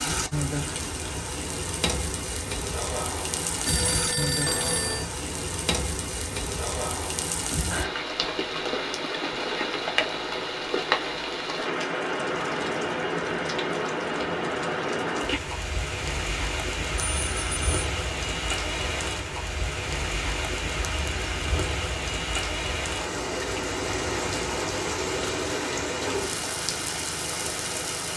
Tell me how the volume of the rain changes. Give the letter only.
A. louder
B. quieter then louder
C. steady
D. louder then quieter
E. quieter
C.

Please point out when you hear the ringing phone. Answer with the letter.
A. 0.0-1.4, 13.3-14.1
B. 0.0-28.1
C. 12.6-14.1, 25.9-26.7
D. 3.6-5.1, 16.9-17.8
D.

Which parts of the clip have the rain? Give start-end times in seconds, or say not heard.
0.0-28.1.